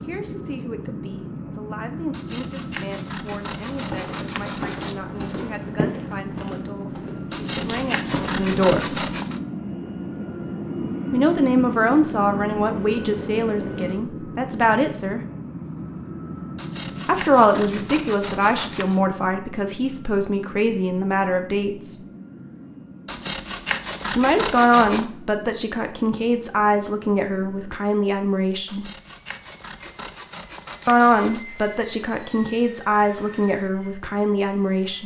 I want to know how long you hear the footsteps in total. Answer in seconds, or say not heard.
5 s.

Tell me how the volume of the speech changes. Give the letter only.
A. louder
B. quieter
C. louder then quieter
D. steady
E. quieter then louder
A.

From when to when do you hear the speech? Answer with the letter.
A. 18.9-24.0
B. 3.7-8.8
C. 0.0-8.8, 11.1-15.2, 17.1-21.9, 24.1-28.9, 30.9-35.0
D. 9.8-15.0
C.